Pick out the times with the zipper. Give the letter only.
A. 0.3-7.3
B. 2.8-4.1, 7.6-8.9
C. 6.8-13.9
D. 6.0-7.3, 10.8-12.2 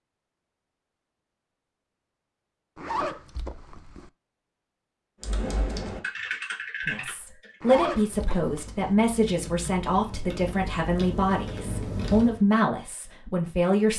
B.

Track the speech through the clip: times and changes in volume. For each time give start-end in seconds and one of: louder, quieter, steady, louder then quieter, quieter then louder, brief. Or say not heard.
6.8-13.9 steady.